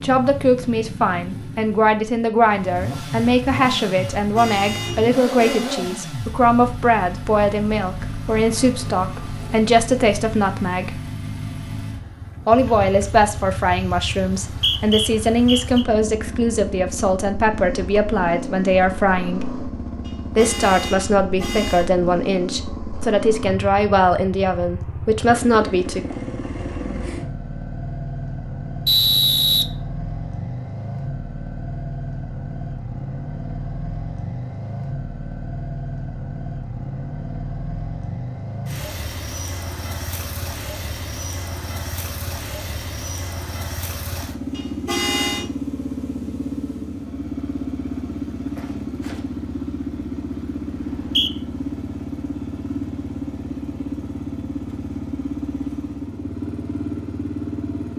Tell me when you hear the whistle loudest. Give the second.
29 s.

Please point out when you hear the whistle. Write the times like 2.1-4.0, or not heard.
14.4-15.8, 28.9-29.6, 50.8-51.3.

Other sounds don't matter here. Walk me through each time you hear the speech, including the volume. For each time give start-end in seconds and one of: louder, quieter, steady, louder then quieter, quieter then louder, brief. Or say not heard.
0.0-11.0 steady
12.4-19.4 steady
20.4-26.0 steady.